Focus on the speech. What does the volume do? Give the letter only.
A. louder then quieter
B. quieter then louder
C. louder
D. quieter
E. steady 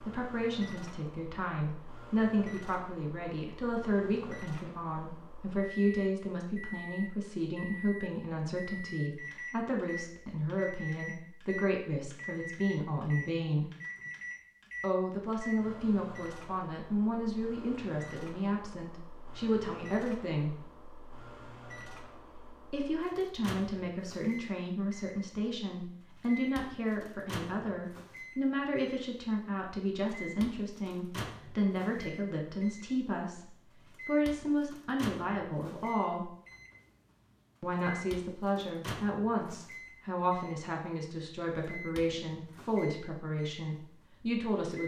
E.